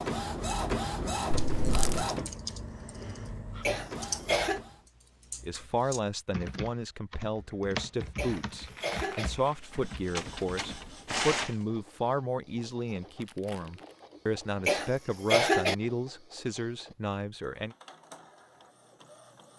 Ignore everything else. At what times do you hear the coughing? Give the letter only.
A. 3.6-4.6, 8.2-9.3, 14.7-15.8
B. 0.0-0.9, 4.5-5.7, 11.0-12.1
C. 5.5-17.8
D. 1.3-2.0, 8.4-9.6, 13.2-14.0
A.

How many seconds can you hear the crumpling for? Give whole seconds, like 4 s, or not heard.
3 s.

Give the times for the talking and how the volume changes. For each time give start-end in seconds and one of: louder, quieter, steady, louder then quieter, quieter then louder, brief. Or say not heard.
5.5-17.8 steady.